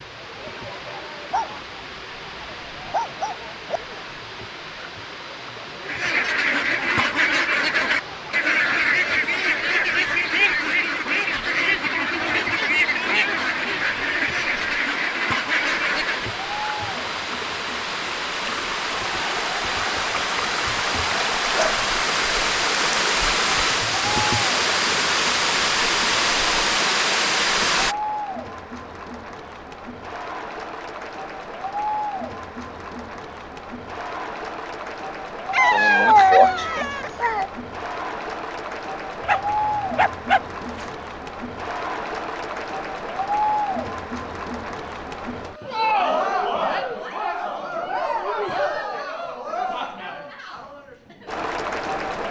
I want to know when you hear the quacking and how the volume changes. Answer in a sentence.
The quacking can be heard from 5.8 to 16.4 s, at a steady volume.